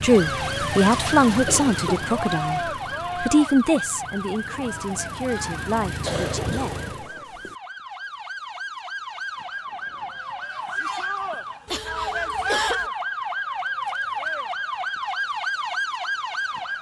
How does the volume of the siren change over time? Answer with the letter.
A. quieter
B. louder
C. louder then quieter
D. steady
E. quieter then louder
E.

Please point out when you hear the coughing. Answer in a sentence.
The coughing can be heard from 1.4 to 2.0 s, from 6.0 to 7.5 s and from 11.7 to 12.9 s.